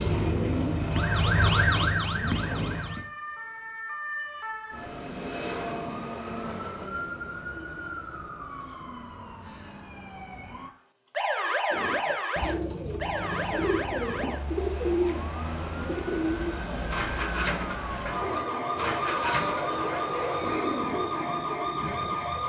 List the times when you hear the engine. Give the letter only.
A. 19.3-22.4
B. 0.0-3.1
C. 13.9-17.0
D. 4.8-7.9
B.